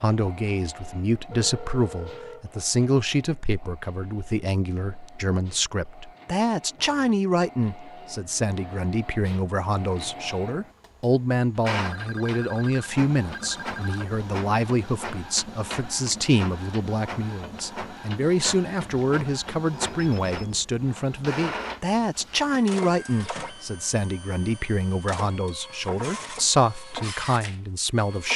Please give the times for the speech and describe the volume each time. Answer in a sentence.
The speech can be heard from 0.0 to 28.3 s, at a steady volume.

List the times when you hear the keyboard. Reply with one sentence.
You can't hear the keyboard here.